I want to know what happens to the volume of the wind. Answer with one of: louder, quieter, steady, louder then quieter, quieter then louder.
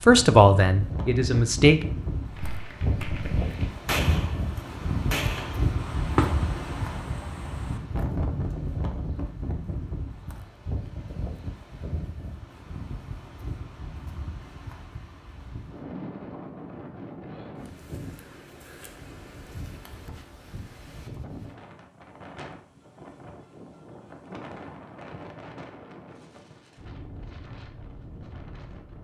quieter.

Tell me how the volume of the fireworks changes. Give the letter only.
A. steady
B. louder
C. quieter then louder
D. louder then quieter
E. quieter
D.